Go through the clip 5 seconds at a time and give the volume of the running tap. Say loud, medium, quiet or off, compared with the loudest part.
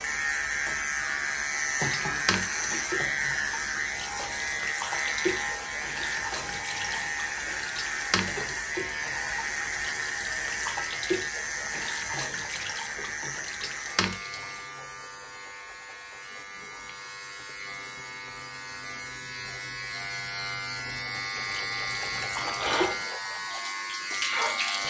loud, loud, loud, off, loud.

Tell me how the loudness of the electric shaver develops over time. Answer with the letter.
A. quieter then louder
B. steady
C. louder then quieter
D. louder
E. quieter
A.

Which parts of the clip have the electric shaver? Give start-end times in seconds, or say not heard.
0.0-24.8.